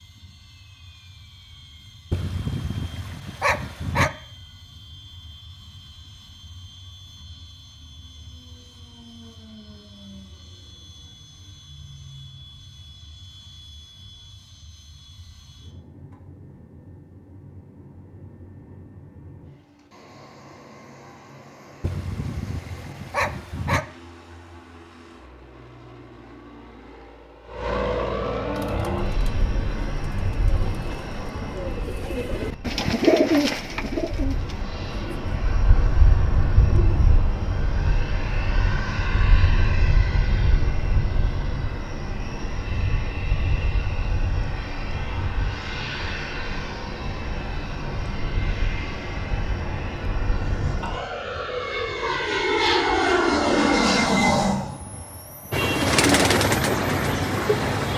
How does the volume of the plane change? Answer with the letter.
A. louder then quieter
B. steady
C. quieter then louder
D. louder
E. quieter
D.